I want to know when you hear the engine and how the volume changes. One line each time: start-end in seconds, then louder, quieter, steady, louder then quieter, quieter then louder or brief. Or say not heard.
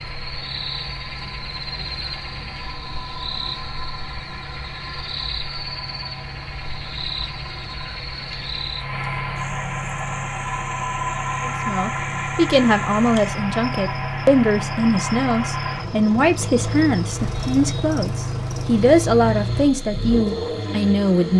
0.0-21.3 louder.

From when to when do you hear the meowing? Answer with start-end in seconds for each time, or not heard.
not heard.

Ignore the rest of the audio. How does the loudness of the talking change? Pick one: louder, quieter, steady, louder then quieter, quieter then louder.
steady.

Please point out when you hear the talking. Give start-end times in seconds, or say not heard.
11.4-21.3.